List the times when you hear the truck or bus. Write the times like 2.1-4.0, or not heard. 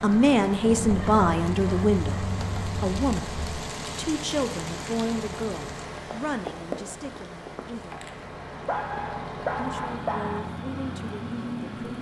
0.0-11.9.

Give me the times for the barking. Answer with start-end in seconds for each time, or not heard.
0.7-3.6, 8.7-10.4.